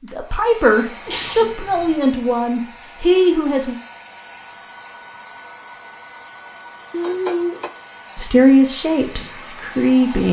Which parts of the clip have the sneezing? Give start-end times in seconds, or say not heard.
1.1-1.9.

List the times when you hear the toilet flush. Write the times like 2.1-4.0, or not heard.
6.9-7.7.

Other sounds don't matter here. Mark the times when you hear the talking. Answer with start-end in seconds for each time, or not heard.
0.0-3.8, 8.2-10.2.